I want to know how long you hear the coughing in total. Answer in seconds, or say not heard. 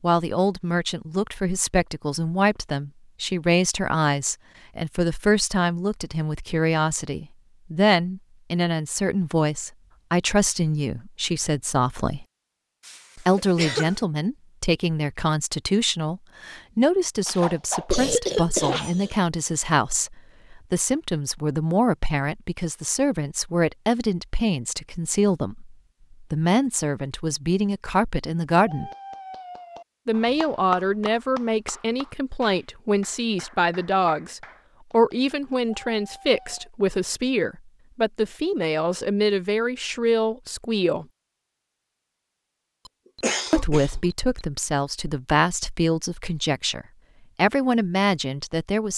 5 s.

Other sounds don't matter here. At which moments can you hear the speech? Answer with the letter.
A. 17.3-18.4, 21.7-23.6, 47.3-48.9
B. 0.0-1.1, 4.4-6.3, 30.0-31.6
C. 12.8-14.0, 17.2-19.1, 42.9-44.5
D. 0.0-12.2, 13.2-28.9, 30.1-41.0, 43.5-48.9
D.